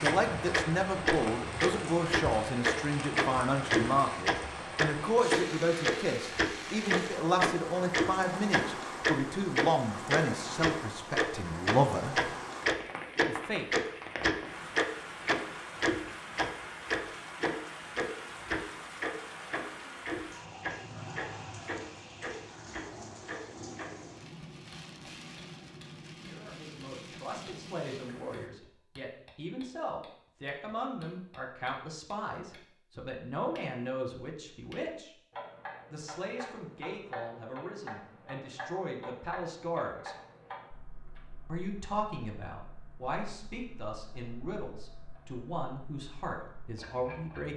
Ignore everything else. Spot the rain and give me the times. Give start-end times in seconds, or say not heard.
0.0-28.5.